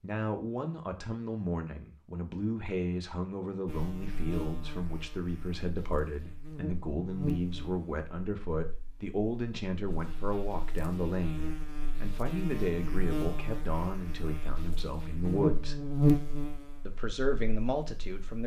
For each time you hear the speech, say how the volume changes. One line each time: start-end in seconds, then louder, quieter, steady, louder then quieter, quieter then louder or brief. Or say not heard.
0.0-15.8 steady
16.9-18.4 brief.